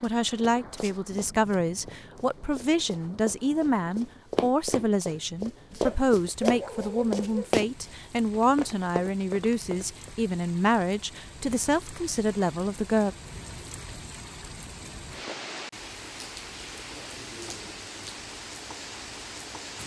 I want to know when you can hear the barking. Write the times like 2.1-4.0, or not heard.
5.8-7.5.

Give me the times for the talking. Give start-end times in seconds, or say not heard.
0.0-13.2.